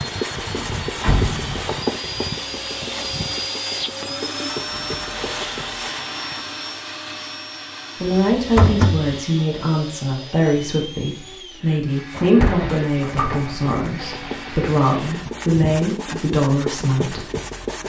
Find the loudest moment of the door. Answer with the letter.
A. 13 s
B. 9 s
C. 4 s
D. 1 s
B.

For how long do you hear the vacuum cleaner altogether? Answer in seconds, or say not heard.
15 s.